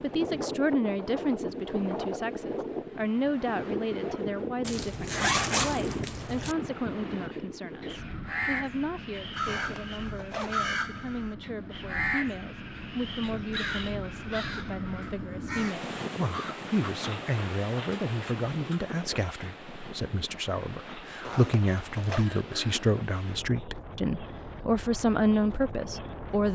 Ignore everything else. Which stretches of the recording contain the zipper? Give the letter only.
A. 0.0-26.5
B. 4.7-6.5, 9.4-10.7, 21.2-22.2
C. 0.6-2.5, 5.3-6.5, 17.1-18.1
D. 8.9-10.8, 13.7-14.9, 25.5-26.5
B.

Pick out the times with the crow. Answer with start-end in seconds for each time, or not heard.
7.1-16.9.